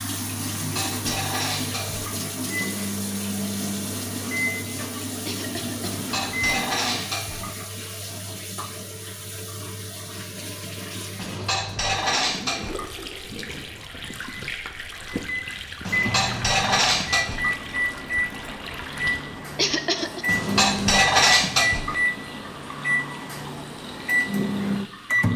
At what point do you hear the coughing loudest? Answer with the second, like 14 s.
20 s.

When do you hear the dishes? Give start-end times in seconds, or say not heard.
0.5-2.1, 5.8-7.5, 11.2-12.9, 15.8-17.6, 20.2-21.9.